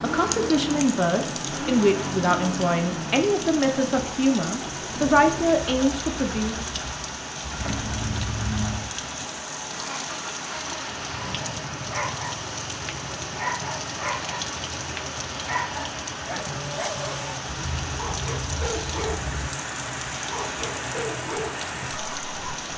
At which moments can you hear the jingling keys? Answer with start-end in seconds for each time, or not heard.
7.5-8.9, 17.4-19.5.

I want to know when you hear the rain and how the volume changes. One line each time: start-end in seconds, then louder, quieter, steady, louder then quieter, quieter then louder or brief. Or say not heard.
0.0-22.7 steady.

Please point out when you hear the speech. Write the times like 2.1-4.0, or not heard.
0.0-6.5.